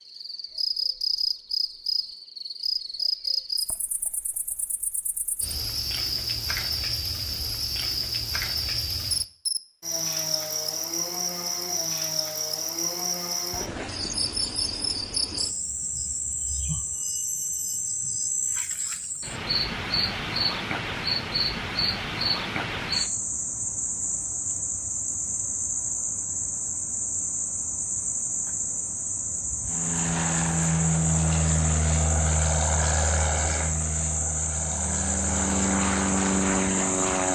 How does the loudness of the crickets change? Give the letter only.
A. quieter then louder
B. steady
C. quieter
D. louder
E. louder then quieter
B.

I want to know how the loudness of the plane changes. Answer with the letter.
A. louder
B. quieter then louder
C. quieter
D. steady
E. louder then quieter
B.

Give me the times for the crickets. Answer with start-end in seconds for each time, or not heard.
0.0-37.2.